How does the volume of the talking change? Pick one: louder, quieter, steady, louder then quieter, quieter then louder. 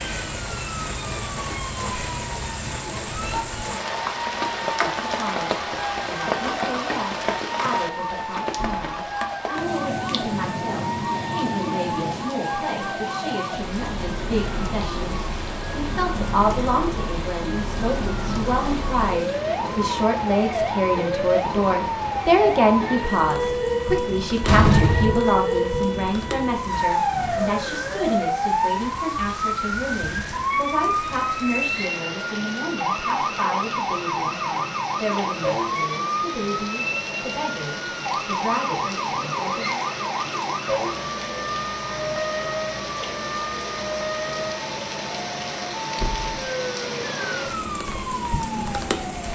louder then quieter.